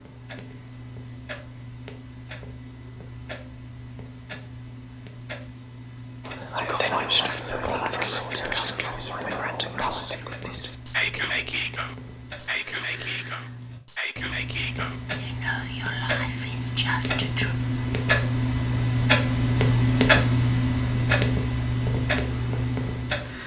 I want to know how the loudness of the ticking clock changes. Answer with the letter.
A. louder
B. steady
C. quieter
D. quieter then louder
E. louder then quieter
A.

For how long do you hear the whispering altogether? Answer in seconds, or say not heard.
11 s.